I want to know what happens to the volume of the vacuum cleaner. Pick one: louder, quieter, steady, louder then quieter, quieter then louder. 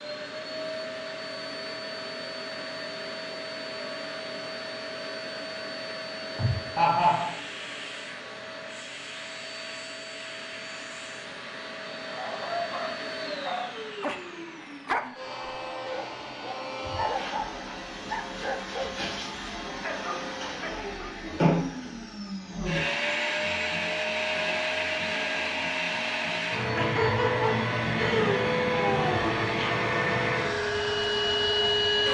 louder.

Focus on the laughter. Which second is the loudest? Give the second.
7 s.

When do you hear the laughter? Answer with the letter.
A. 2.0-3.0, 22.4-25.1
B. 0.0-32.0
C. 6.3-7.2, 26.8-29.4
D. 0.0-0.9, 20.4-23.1
C.